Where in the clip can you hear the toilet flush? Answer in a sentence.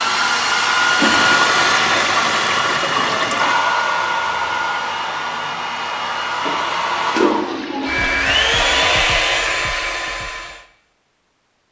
You can hear the toilet flush from 0.9 to 3.6 s and from 6.5 to 8.9 s.